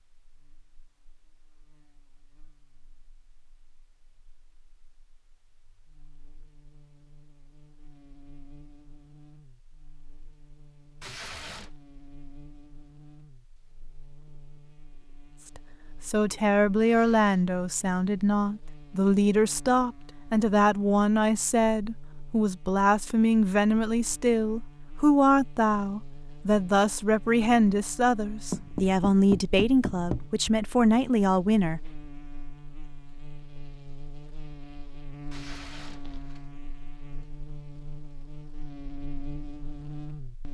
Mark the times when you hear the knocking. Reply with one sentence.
You can hear the knocking from 28.5 to 30.2 s.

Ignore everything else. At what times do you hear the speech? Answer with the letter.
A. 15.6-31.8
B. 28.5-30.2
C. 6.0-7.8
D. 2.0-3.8
A.